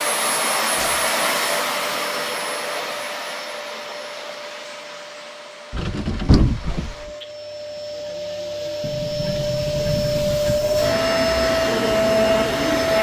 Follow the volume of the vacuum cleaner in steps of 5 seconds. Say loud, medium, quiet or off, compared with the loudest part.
medium, medium, loud.